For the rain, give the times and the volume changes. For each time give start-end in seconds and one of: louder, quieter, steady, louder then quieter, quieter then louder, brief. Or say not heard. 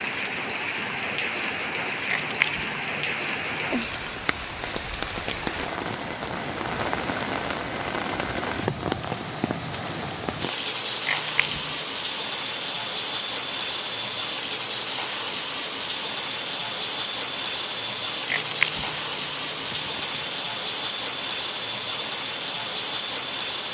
0.0-23.6 steady.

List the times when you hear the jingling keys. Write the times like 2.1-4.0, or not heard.
2.0-4.1, 11.1-11.8, 18.3-20.3.